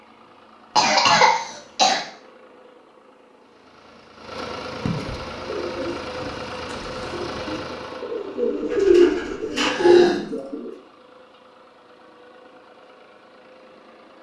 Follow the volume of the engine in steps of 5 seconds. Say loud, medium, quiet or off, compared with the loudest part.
medium, loud, quiet.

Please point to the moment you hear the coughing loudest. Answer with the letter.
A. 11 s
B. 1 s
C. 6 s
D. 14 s
B.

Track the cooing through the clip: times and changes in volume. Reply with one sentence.
The cooing can be heard from 5.3 to 10.7 s, getting louder.